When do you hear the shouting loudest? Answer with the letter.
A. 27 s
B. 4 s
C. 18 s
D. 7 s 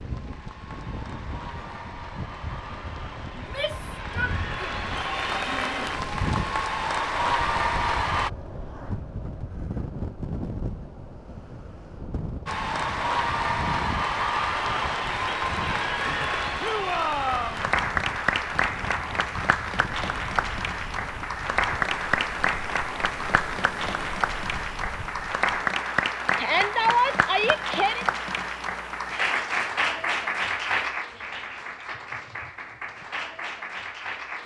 A.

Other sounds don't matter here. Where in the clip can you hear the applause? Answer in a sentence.
You can hear the applause from 0.0 to 8.3 s and from 12.4 to 34.4 s.